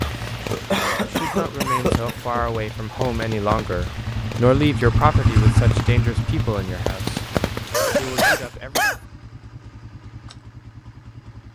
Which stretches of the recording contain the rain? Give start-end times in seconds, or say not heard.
0.0-8.6.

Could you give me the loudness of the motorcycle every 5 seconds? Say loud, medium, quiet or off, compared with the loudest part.
medium, loud, quiet.